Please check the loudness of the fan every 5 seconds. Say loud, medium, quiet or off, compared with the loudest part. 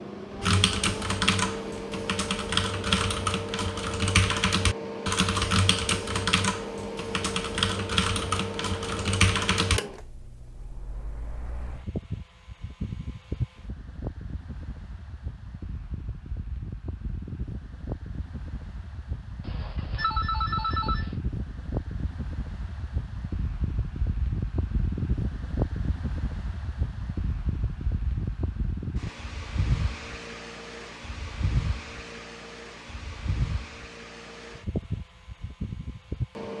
loud, loud, medium, medium, loud, loud, loud, loud.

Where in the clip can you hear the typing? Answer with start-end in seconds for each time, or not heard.
0.4-9.8.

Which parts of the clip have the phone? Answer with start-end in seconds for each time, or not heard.
19.4-21.2.